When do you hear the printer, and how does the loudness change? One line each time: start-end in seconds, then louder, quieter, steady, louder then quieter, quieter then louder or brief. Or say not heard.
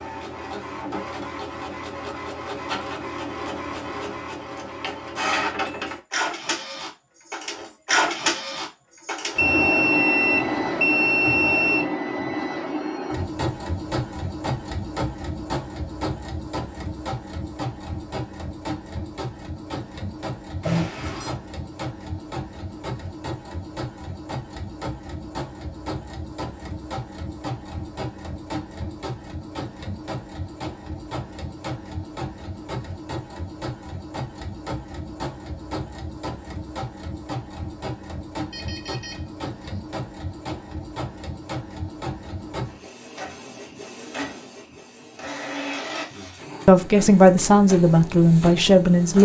0.0-49.1 quieter.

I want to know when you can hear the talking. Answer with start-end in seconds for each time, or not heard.
46.6-49.1.